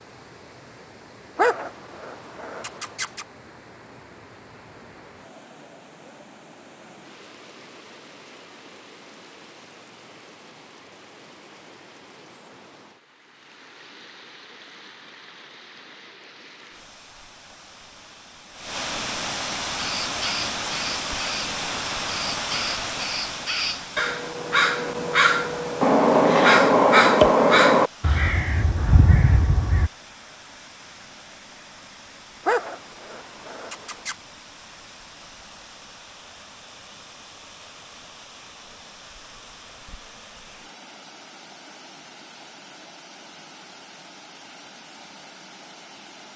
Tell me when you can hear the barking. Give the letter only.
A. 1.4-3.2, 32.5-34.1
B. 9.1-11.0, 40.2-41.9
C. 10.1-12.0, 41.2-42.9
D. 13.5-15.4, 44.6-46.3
A.